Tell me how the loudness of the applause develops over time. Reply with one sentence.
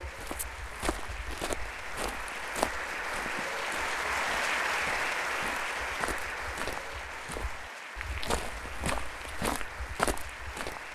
The loudness of the applause goes up, then down.